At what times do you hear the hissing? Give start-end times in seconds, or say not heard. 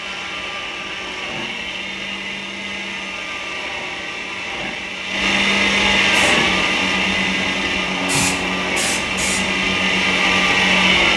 6.1-11.1.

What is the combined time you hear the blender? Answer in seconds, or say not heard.
11 s.